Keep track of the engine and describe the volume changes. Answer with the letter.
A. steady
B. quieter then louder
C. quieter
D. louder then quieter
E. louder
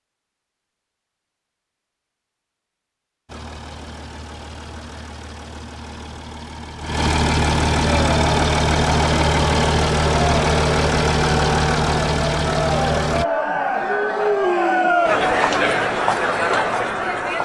E.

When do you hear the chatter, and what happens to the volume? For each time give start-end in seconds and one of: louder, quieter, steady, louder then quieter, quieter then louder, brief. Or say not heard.
7.8-17.4 louder.